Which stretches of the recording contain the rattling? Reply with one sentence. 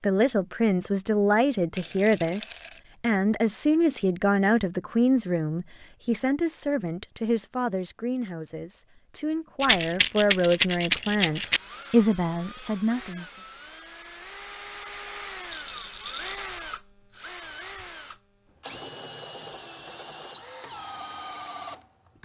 The rattling can be heard from 1.8 to 2.8 s, from 9.6 to 11.6 s and from 15.5 to 16.3 s.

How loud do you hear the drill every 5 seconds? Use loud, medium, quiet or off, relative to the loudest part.
off, off, loud, loud, loud.